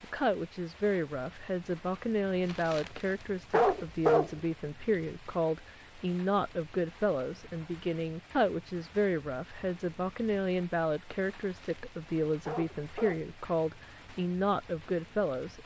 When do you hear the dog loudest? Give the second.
4 s.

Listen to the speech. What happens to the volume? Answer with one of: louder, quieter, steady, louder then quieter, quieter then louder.
steady.